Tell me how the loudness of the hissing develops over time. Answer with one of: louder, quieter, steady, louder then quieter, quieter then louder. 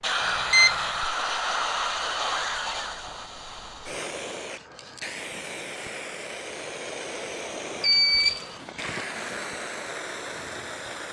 quieter.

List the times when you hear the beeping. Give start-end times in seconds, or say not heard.
0.2-0.8, 7.8-8.7.